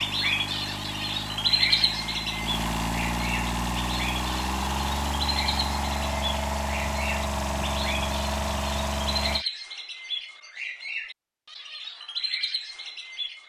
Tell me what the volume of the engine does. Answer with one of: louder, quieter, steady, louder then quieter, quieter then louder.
louder.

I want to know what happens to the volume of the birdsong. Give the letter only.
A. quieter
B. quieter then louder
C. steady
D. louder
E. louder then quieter
A.